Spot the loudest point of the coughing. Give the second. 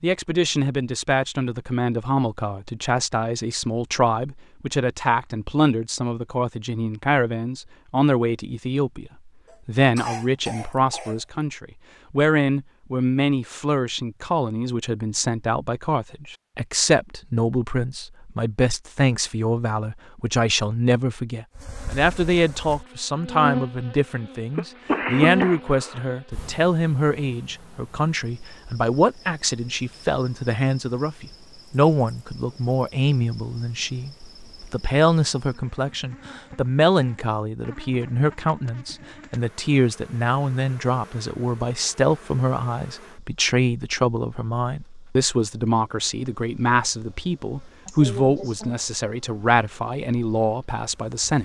25 s.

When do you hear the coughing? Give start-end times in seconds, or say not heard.
9.4-11.2, 24.6-26.0, 47.9-48.8.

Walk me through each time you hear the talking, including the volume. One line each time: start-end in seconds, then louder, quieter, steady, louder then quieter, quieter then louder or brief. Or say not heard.
0.0-51.4 steady.